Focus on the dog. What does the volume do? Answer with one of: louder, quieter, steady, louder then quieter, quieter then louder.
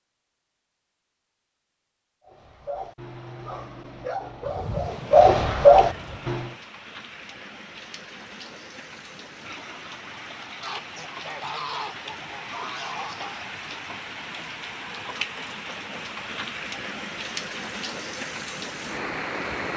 louder.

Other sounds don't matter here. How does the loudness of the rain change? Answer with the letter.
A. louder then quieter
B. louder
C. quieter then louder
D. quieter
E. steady
B.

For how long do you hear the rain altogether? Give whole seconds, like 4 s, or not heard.
15 s.